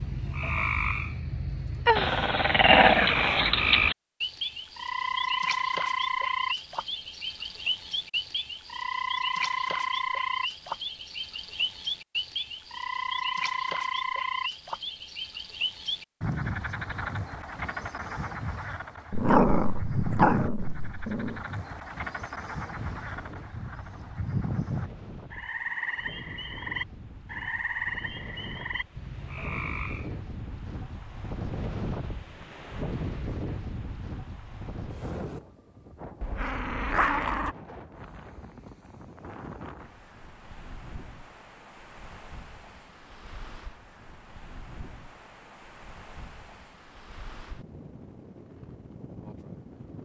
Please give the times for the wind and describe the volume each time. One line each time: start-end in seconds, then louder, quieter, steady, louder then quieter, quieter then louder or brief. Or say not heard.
22.7-50.0 louder then quieter.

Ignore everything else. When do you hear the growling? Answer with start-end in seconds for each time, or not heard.
1.9-4.0, 19.1-21.4, 36.2-37.5.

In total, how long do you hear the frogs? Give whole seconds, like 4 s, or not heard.
30 s.